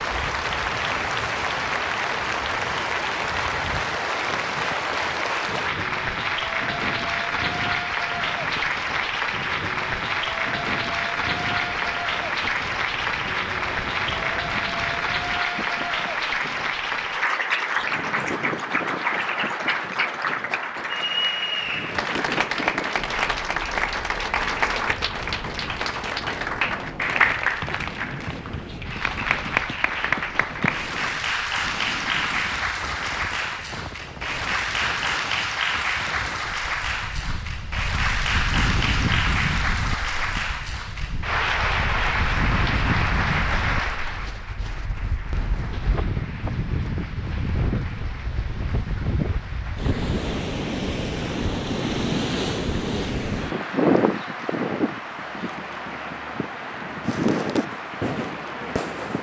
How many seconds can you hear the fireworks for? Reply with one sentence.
The fireworks can be heard for 2 seconds in total.